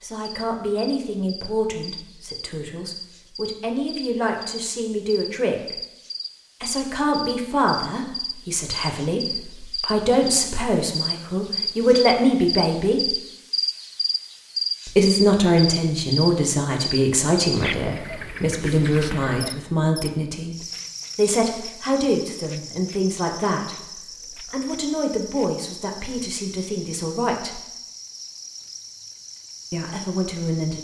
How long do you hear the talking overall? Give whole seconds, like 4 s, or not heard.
26 s.